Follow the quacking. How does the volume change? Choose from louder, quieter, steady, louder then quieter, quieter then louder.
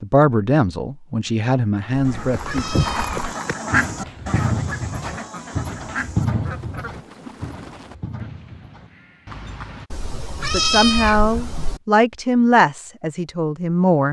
louder then quieter.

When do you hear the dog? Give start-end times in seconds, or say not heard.
not heard.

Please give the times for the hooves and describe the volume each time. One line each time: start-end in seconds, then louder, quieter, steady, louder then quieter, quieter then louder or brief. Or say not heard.
2.1-9.9 quieter.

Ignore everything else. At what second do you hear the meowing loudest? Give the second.
11 s.